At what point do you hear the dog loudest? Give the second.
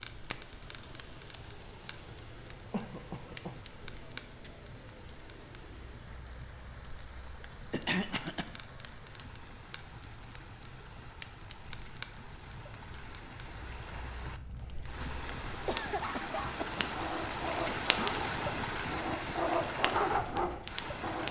20 s.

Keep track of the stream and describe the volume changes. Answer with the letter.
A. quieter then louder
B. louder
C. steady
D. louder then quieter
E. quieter
B.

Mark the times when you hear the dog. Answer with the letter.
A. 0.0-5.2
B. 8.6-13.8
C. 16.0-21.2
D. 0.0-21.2
C.